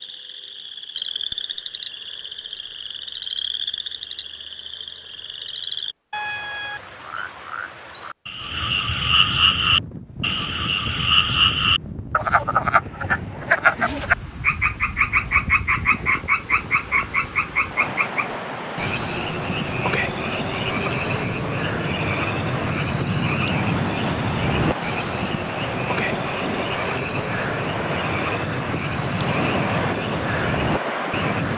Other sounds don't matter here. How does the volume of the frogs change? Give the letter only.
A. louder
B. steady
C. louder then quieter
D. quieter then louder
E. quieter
C.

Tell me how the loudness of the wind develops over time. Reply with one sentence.
The volume of the wind goes up.